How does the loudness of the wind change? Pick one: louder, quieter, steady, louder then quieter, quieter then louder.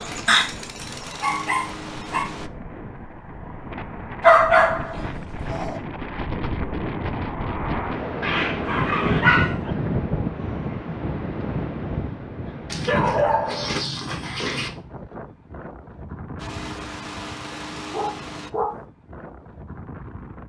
louder then quieter.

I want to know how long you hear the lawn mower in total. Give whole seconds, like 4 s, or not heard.
5 s.